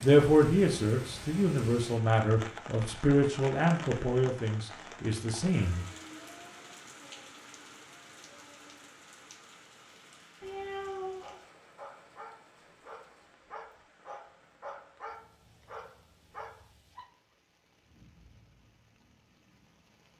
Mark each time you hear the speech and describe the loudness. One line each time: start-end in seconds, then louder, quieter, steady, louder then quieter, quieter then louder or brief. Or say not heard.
0.0-5.8 quieter.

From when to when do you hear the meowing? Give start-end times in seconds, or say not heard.
10.4-11.3.